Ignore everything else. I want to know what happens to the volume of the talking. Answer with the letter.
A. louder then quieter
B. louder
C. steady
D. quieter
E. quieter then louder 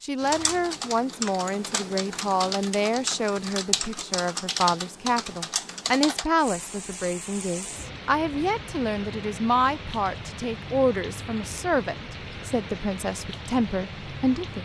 C.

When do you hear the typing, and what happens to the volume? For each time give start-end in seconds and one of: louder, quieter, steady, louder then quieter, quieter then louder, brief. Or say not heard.
0.1-6.3 steady.